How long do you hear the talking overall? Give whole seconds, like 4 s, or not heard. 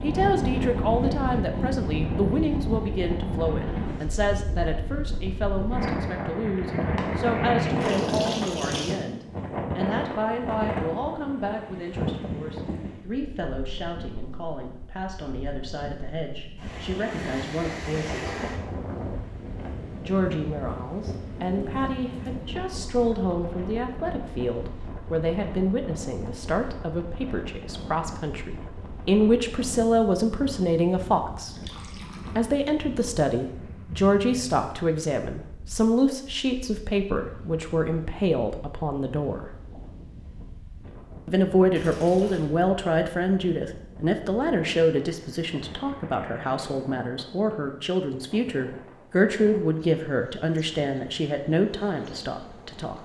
49 s.